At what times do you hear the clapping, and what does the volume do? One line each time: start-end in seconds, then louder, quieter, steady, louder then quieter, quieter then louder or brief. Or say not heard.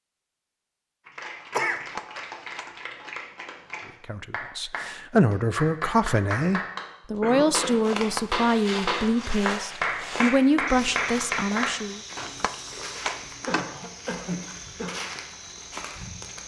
1.1-11.7 louder.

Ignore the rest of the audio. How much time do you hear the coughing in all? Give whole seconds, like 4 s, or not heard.
3 s.